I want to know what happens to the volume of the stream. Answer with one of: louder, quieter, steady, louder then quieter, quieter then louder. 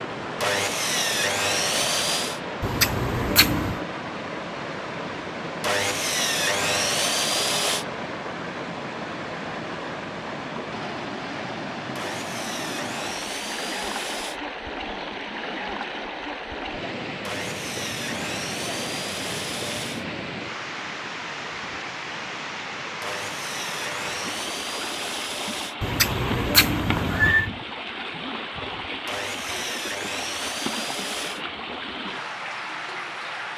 steady.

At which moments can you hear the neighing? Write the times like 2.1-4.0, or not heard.
2.6-3.8, 25.8-27.5.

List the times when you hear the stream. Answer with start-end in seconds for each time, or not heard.
0.0-33.5.